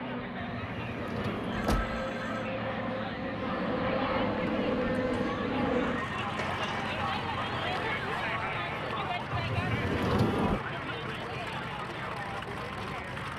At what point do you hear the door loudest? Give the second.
10 s.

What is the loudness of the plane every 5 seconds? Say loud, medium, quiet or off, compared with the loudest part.
loud, loud, medium.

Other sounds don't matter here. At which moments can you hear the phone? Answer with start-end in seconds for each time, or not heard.
1.5-2.5.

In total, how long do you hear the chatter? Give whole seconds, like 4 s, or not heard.
13 s.